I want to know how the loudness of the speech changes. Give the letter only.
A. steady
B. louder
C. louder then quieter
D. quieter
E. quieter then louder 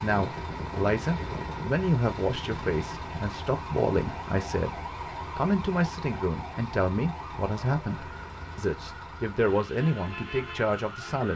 A.